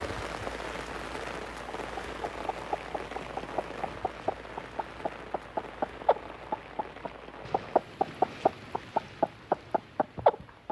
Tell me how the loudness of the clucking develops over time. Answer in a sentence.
The loudness of the clucking goes up.